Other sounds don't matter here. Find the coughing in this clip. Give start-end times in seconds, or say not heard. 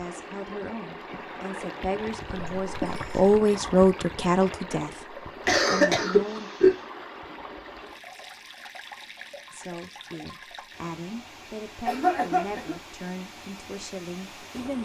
2.6-3.3, 5.5-6.8, 11.8-12.8.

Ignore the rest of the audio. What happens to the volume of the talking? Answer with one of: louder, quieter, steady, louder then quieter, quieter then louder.
louder then quieter.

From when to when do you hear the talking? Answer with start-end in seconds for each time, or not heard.
0.0-6.5, 9.5-14.7.